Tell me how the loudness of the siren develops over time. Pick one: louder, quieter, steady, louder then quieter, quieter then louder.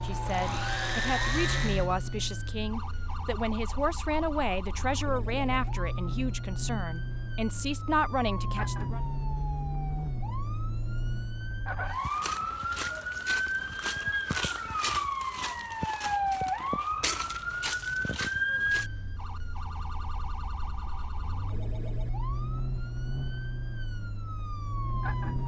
louder then quieter.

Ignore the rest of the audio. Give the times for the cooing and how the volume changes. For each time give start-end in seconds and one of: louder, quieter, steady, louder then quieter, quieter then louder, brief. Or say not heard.
not heard.